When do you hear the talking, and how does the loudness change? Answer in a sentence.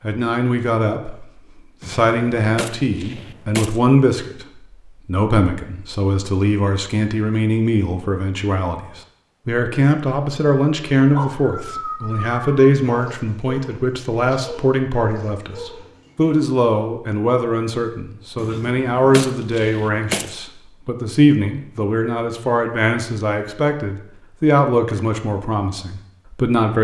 You can hear the talking from 0.0 to 26.7 s, at a steady volume.